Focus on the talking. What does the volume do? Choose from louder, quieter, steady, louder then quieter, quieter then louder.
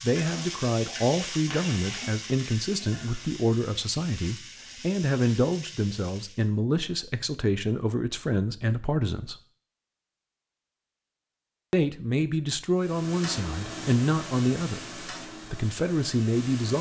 steady.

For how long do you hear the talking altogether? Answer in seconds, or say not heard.
14 s.